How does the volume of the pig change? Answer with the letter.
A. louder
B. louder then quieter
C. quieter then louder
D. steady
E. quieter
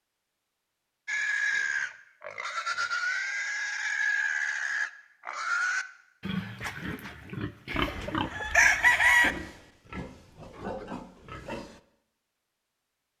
E.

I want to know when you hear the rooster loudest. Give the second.
9 s.